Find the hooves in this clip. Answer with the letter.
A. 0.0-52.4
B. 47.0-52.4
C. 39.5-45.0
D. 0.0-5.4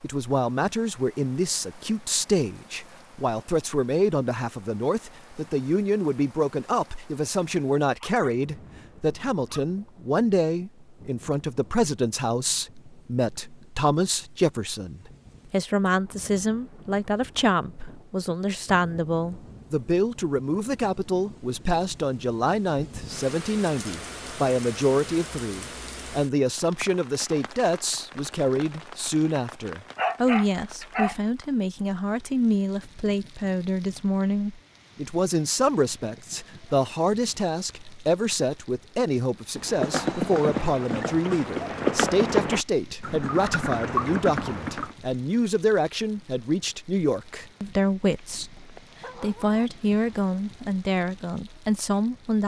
C.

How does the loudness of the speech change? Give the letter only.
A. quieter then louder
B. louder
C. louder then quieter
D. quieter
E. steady
E.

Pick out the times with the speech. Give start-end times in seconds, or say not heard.
0.0-52.4.